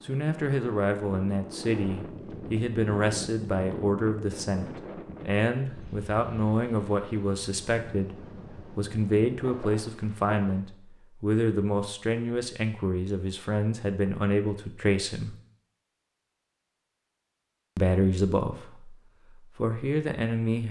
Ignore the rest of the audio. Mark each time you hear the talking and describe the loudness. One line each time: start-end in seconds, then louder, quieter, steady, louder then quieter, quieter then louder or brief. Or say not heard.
0.0-15.3 steady
17.8-20.6 brief.